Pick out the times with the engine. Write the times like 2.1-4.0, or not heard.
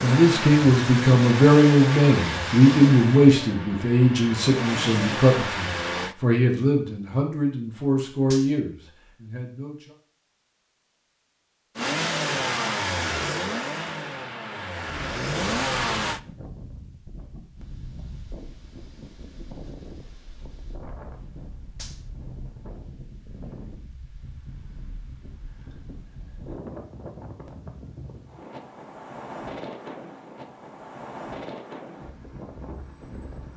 0.0-6.2, 11.8-16.2.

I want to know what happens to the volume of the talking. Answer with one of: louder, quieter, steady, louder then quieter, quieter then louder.
quieter.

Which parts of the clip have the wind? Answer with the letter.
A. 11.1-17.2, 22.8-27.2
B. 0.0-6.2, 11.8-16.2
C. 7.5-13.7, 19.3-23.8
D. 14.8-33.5
D.